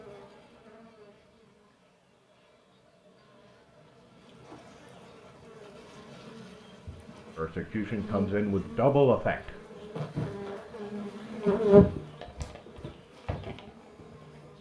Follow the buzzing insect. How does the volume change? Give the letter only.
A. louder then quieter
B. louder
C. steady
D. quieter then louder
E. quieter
B.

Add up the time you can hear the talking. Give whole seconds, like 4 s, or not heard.
2 s.